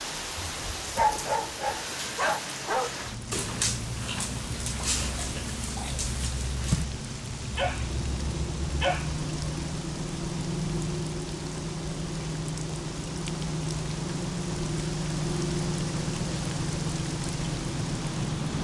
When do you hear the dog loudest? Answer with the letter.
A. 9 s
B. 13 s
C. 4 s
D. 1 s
D.